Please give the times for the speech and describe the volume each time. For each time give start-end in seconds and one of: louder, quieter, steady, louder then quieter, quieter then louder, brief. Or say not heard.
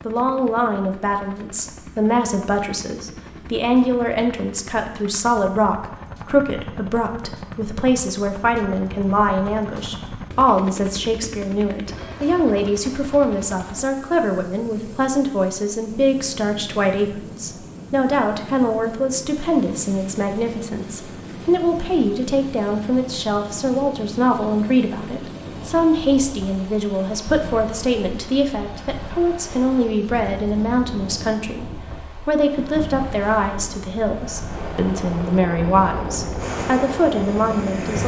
0.1-38.0 steady.